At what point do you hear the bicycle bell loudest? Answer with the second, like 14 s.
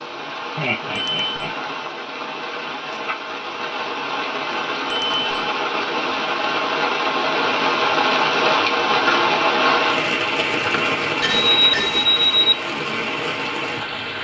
12 s.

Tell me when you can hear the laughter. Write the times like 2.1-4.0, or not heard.
0.6-1.5.